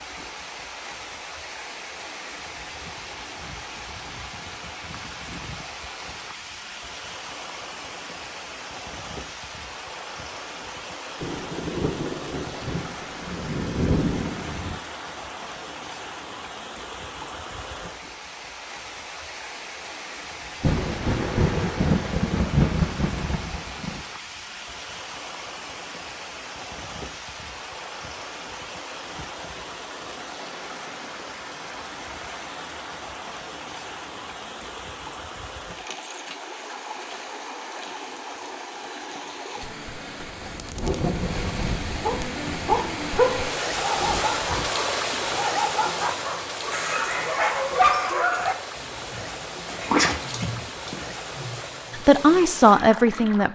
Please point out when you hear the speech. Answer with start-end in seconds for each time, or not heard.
52.0-53.5.